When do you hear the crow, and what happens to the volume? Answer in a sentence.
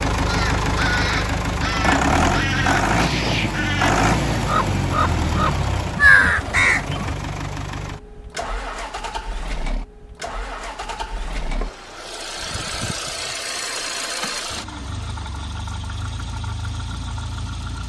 The crow can be heard from 0.2 to 7.2 s, getting louder.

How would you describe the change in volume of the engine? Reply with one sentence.
The volume of the engine goes down.